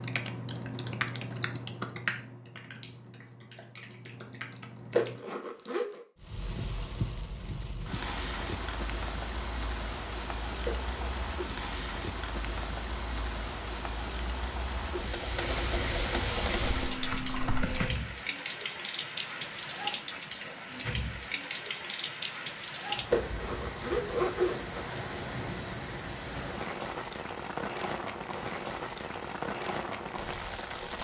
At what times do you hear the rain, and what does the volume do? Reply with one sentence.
You can hear the rain from 6.2 to 31.0 s, at a steady volume.